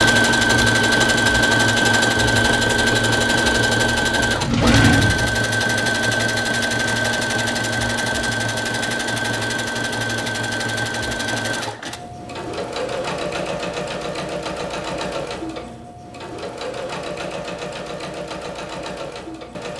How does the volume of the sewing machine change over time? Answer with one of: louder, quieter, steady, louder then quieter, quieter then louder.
quieter.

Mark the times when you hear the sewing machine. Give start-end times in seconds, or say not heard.
0.0-19.7.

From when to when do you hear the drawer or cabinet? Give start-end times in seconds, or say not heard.
4.3-5.3.